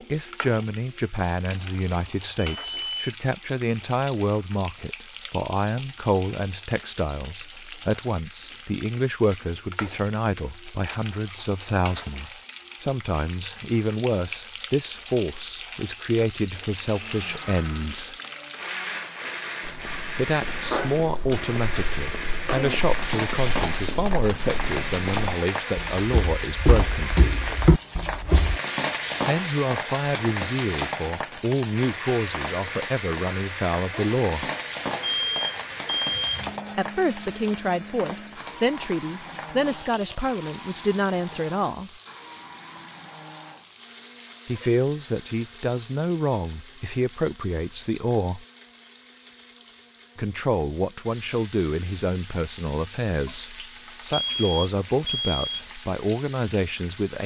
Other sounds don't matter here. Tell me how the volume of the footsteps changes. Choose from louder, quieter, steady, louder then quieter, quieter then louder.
louder.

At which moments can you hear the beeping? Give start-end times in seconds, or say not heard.
2.4-3.1, 35.0-36.6, 54.1-55.7.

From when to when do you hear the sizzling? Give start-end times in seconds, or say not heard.
0.0-57.2.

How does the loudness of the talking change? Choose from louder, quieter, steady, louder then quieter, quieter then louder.
steady.